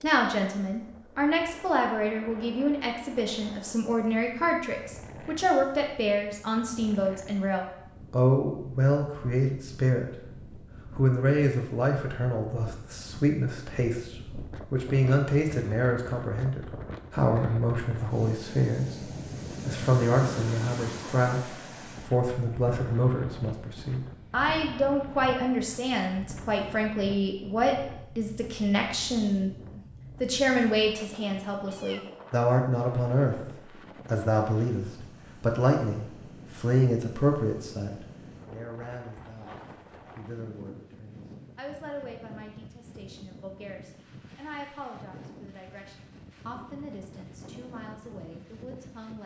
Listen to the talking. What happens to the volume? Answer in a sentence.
The loudness of the talking goes down.